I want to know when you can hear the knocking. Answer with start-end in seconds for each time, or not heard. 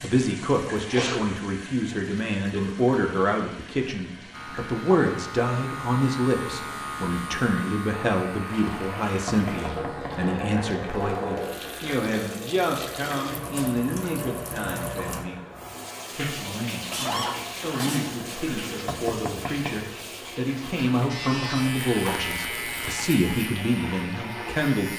9.2-10.2, 18.9-19.9.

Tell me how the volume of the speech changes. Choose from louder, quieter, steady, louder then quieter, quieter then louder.
quieter then louder.